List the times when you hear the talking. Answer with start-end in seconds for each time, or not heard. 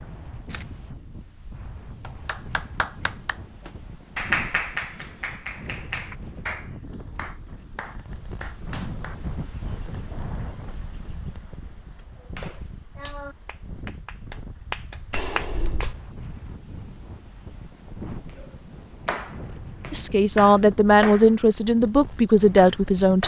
19.9-23.2.